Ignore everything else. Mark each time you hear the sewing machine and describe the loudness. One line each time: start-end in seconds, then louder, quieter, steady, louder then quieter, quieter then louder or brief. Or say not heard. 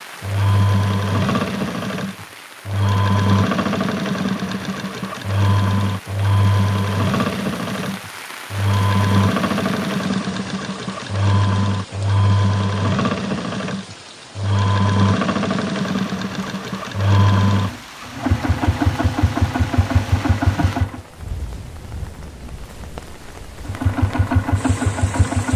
0.2-21.0 steady
23.6-25.5 brief.